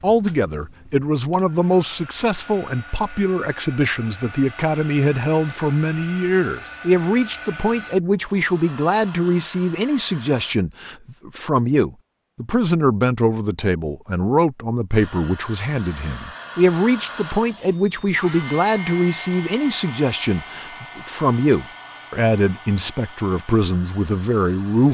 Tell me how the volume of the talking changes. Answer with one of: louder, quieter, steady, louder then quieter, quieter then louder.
steady.